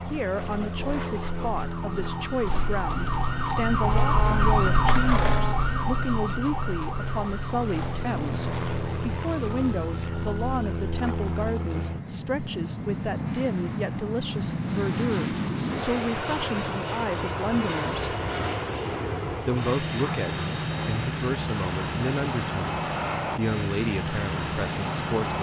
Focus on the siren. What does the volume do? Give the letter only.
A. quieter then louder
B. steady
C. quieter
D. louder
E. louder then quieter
E.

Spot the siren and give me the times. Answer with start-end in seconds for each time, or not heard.
0.0-11.6.